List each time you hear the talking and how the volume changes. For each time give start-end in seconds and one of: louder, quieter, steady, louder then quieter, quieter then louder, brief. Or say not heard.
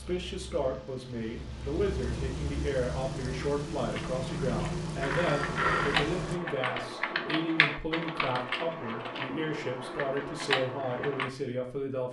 0.0-12.0 steady.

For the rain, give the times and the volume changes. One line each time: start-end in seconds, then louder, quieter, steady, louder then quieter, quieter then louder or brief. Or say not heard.
0.0-6.4 louder.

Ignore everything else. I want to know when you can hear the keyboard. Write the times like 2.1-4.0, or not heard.
3.9-11.3.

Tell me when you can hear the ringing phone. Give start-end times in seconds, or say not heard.
5.0-6.0.